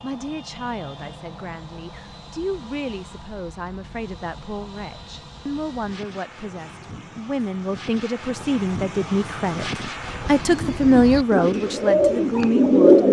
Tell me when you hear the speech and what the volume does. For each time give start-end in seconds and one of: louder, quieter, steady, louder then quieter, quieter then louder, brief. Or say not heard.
0.0-13.0 louder.